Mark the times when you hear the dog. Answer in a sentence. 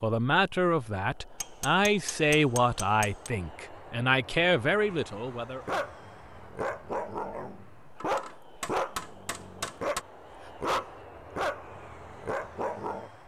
You can hear the dog from 5.7 to 13.1 s.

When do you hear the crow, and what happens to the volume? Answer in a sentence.
You can't hear the crow here.